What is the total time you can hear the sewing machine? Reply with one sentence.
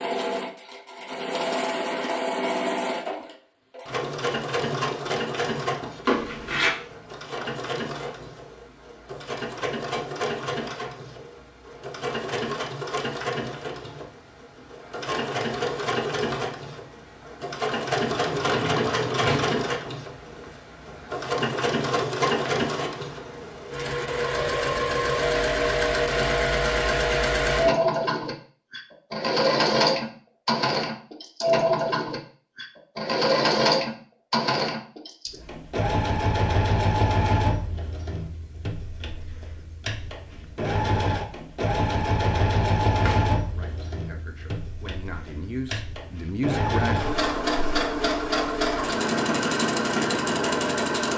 The sewing machine can be heard for 51 seconds in total.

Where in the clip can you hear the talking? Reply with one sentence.
You can hear the talking from 43.5 to 47.0 s.